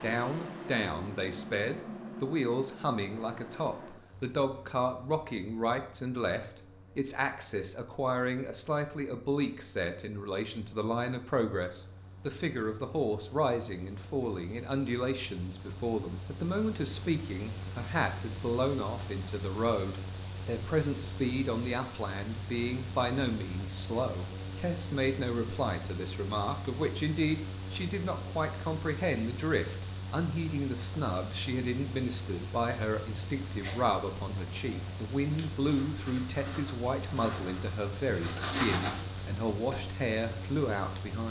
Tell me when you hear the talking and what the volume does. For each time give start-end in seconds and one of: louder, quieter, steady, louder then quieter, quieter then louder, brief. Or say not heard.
0.0-41.2 steady.